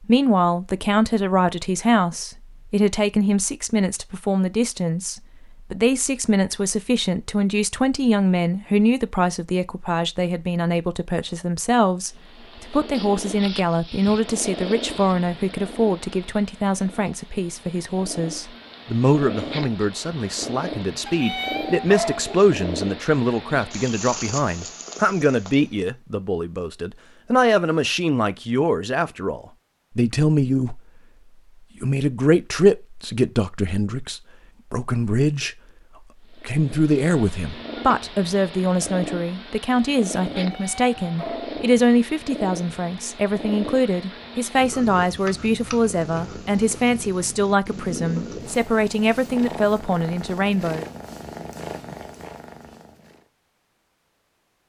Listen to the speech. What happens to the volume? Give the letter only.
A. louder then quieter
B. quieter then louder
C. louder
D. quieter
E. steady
E.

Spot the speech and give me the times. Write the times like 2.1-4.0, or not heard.
0.0-30.8, 31.8-35.5, 36.3-50.9.